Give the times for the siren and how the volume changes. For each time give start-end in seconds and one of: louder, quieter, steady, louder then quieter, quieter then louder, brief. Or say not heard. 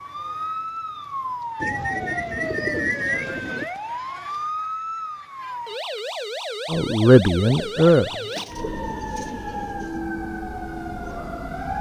0.0-11.7 steady.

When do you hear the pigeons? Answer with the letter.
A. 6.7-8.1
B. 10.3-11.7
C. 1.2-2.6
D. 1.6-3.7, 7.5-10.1
D.